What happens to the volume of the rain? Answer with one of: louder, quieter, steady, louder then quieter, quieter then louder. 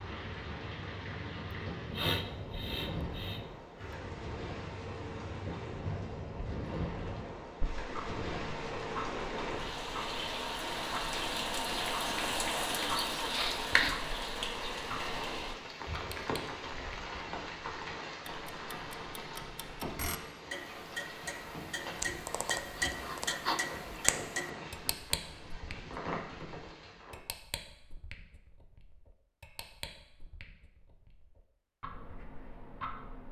louder then quieter.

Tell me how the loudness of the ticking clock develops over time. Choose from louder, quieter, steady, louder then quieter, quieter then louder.
louder then quieter.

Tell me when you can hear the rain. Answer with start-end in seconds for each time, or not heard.
0.0-27.2.